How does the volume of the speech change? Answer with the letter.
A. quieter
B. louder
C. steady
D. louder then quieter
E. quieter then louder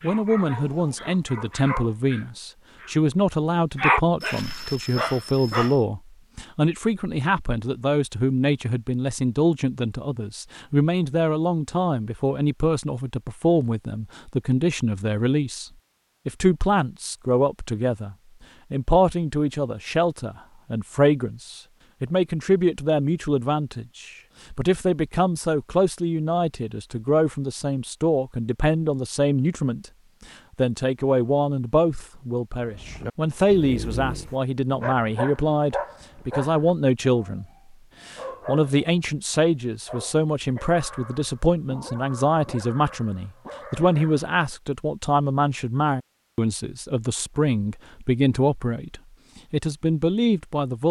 C.